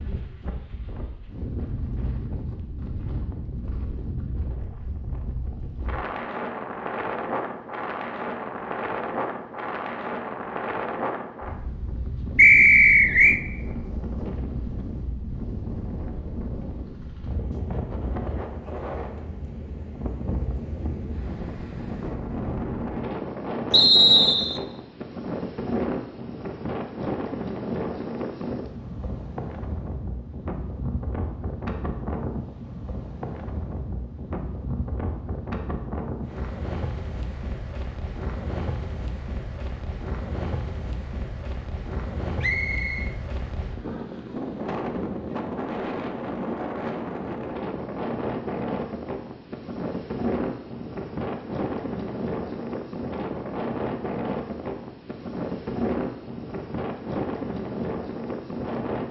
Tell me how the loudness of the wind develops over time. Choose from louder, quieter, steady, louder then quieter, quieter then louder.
steady.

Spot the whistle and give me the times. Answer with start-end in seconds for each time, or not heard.
12.3-13.4, 23.7-24.6, 42.4-43.1.